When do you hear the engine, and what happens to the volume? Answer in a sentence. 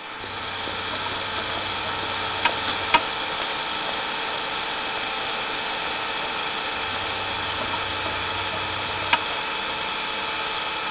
The engine can be heard from 0.0 to 10.8 s, at a steady volume.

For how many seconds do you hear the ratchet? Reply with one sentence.
You can hear the ratchet for 5 seconds altogether.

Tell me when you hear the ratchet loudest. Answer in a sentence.
The volume of the ratchet peaks at 9 seconds.